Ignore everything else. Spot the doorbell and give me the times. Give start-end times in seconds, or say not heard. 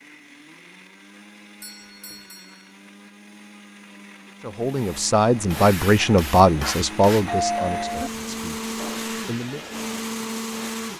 1.6-2.7, 7.2-8.1.